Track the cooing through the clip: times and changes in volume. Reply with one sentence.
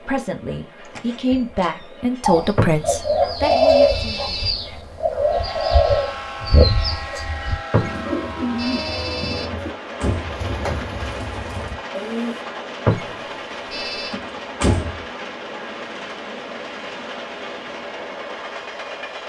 You can hear the cooing from 2.2 to 12.4 s, getting quieter.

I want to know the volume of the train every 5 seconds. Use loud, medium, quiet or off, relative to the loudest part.
medium, loud, loud, loud.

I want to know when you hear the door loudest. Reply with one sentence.
The volume of the door peaks at 15 seconds.